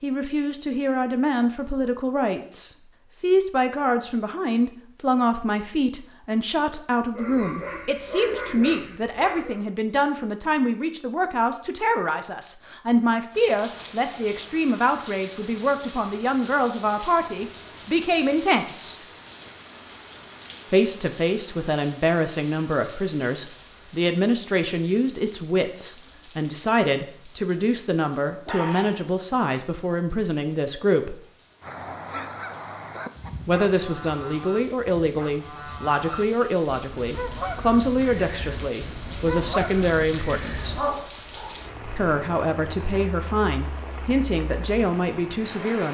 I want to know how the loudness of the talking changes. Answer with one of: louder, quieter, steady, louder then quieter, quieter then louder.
steady.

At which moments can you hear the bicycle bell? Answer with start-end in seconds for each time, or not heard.
not heard.